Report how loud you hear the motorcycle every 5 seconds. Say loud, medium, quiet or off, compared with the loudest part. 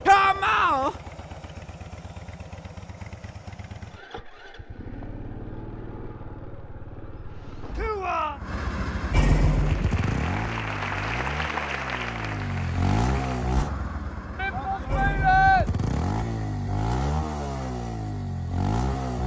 quiet, loud, loud, loud.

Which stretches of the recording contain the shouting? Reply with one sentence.
You can hear the shouting from 0.1 to 0.9 s, from 7.8 to 8.4 s and from 14.3 to 15.7 s.